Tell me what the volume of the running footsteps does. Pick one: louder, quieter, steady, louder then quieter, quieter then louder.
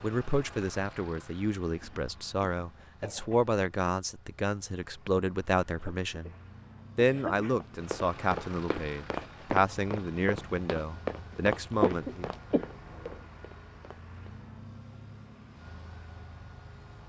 quieter.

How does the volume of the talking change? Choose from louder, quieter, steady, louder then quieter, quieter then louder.
steady.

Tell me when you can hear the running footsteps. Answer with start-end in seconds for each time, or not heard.
7.5-14.2.